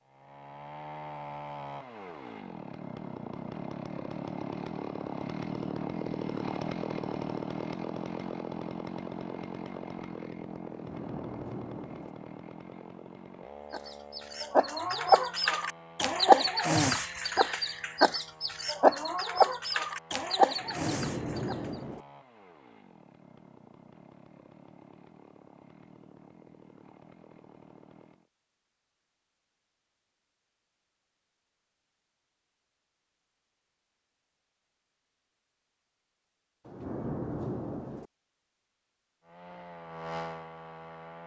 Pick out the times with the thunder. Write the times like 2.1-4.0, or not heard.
10.7-12.2, 20.6-22.1, 36.6-38.1.